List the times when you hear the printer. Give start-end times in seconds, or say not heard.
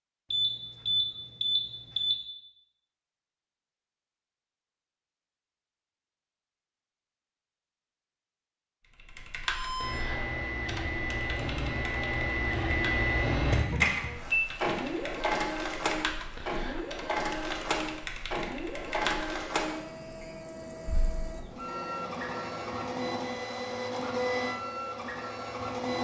9.4-26.0.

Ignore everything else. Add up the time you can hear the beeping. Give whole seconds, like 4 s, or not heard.
4 s.